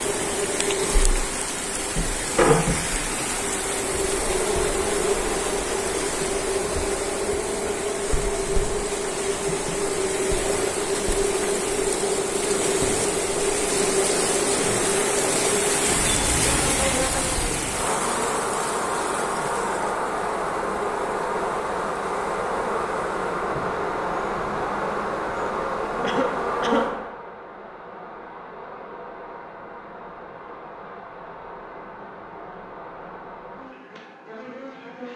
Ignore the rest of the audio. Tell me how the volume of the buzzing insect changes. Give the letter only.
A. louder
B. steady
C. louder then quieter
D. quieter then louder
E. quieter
E.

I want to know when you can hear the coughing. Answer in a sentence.
The coughing can be heard from 26.0 to 26.9 s.